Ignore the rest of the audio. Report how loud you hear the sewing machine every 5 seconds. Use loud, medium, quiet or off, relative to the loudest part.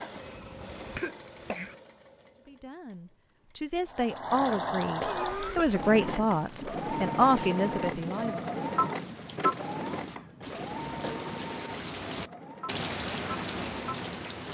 medium, loud, medium.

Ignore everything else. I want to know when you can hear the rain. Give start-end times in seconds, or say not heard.
5.2-14.4.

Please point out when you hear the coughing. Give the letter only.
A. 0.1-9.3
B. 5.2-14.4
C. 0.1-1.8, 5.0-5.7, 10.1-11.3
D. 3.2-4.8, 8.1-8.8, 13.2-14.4
C.